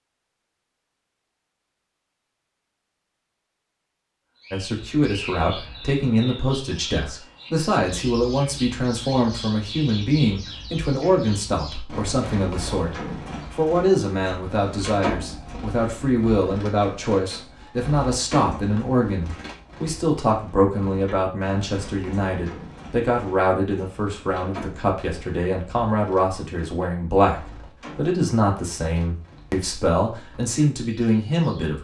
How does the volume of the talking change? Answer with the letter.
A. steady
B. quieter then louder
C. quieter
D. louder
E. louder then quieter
A.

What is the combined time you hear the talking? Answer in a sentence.
The talking can be heard for 27 seconds in total.